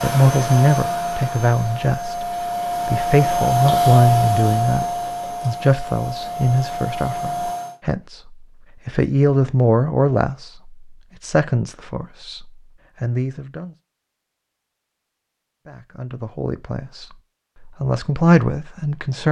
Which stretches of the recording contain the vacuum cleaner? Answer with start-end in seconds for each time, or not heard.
0.0-7.8.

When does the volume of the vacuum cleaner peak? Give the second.
4 s.